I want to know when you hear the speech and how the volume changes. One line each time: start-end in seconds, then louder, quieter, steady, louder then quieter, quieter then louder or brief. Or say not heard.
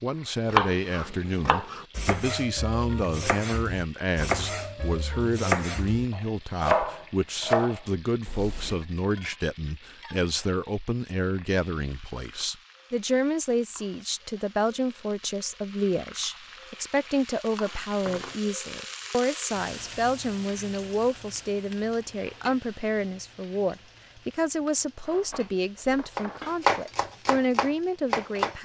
0.0-28.5 steady.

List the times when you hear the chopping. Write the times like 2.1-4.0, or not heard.
0.5-8.8, 26.1-28.5.